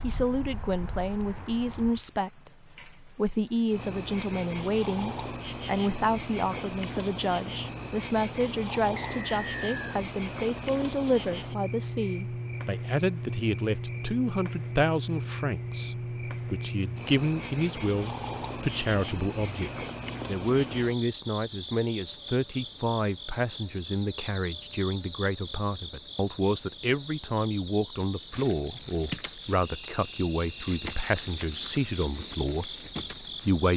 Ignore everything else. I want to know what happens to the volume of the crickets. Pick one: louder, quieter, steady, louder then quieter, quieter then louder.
steady.